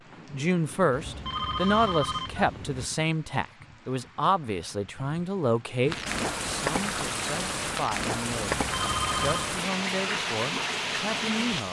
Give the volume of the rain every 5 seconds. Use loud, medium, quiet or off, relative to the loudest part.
quiet, loud, loud.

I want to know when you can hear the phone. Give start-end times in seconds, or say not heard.
0.9-2.9, 8.6-9.6.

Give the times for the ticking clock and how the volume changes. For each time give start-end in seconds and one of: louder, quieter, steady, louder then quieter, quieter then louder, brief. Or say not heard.
not heard.